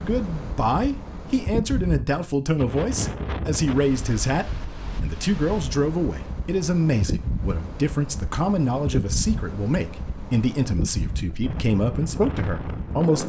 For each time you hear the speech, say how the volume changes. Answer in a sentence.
You can hear the speech from 0.0 to 13.2 s, at a steady volume.